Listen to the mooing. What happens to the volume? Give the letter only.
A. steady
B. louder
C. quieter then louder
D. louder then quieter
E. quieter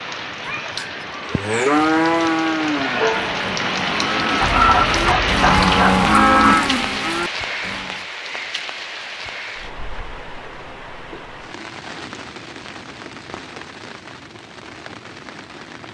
C.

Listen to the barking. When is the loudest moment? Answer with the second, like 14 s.
5 s.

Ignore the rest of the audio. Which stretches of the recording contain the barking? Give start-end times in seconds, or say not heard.
4.4-6.5.